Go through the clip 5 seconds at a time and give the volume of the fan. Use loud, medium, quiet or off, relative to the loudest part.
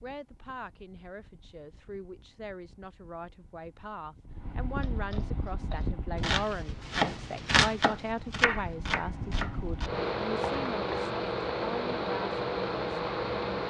quiet, medium, loud.